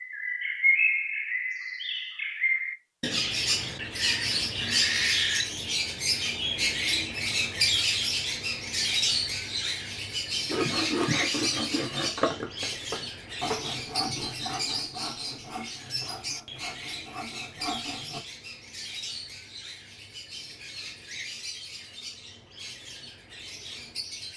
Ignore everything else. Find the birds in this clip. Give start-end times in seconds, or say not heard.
0.0-24.3.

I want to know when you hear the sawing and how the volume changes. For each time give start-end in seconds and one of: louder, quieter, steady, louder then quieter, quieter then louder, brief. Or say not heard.
10.4-18.2 quieter.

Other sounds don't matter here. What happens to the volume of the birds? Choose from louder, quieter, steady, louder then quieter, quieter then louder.
quieter.